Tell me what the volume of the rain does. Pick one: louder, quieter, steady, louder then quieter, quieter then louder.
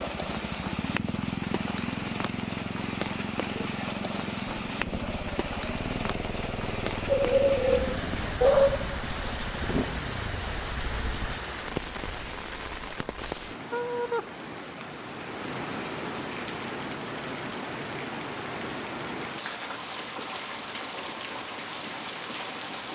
steady.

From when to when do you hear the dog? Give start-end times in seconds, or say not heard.
7.1-8.9.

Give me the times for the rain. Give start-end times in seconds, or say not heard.
0.0-22.9.